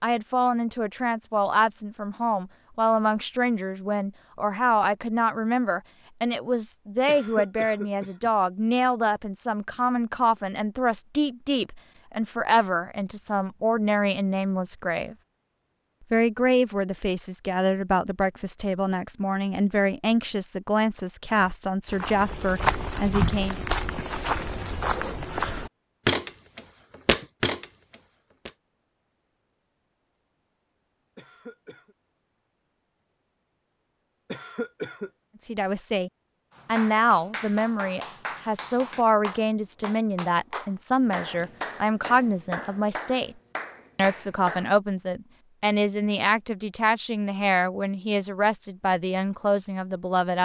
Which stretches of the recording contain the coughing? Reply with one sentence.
The coughing can be heard from 7.0 to 8.3 s, from 31.1 to 31.9 s and from 34.3 to 35.1 s.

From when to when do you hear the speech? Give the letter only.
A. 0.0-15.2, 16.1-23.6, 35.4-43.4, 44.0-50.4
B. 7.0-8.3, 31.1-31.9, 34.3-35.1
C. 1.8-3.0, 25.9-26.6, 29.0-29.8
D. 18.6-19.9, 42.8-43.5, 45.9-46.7
A.